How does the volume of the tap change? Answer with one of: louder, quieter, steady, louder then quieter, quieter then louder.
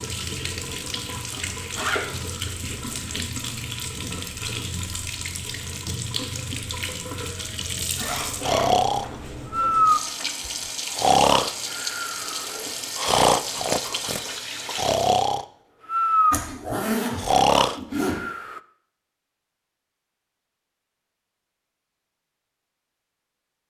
steady.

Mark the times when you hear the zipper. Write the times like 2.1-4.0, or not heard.
1.3-3.2, 8.0-9.2, 16.3-18.1.